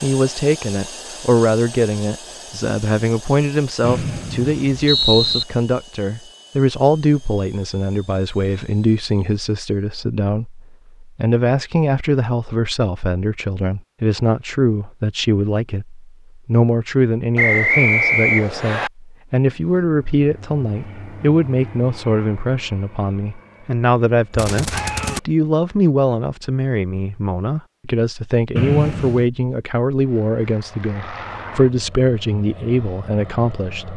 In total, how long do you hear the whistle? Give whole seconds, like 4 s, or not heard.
4 s.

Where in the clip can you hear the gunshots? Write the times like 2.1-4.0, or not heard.
24.3-25.2.